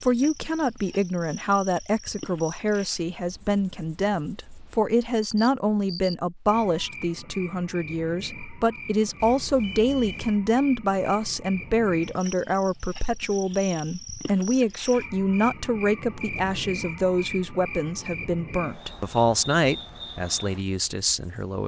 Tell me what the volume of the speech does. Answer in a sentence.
The loudness of the speech stays about the same.